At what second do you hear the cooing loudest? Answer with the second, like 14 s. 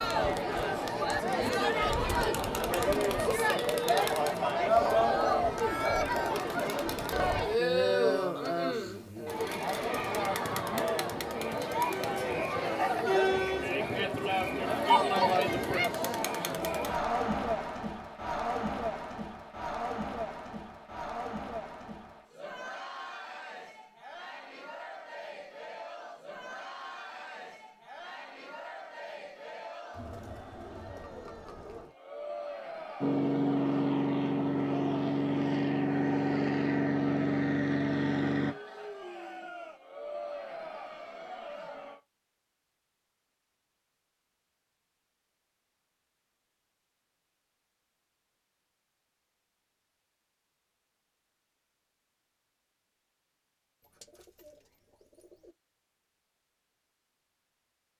5 s.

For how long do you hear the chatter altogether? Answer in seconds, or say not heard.
42 s.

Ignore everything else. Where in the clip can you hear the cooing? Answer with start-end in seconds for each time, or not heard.
4.7-6.4, 53.9-55.5.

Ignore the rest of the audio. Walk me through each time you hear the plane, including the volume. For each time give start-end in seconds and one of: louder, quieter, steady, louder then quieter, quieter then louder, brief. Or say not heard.
33.0-38.5 steady.